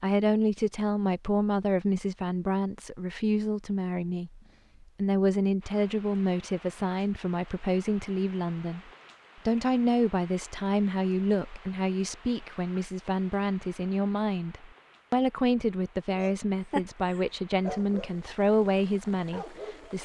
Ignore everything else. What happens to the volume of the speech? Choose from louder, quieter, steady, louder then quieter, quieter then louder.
steady.